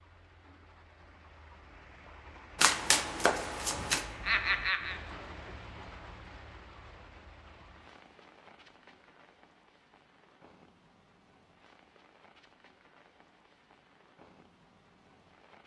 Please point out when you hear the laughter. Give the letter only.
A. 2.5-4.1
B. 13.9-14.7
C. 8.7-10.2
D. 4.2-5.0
D.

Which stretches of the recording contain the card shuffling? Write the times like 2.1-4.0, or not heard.
2.5-4.1.